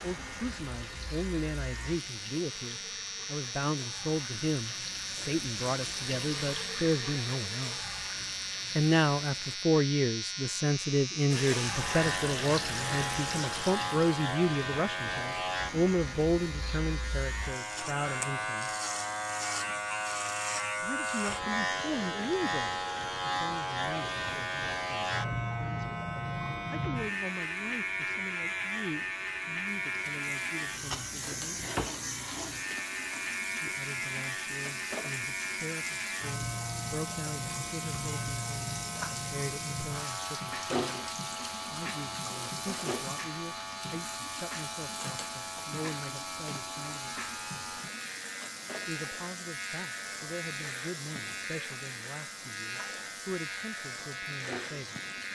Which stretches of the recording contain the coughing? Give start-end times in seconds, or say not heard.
not heard.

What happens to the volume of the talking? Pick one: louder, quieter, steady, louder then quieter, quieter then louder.
quieter.